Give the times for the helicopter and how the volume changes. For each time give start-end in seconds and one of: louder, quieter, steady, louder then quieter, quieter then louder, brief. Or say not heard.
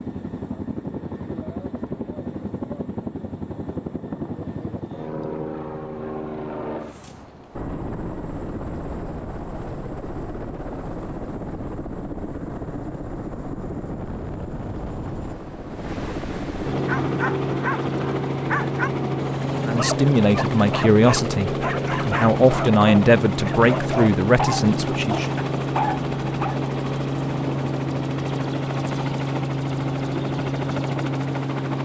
0.0-31.8 louder.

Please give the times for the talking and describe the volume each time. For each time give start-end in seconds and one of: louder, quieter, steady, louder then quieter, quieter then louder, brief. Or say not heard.
19.6-25.3 steady.